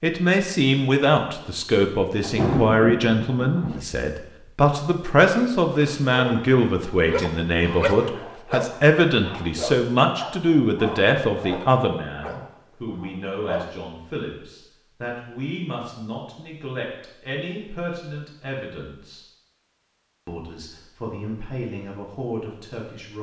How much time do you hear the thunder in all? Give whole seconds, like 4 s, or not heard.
2 s.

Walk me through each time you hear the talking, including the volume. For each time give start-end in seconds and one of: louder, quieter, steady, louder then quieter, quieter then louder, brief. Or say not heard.
0.0-19.2 quieter
20.2-23.1 brief.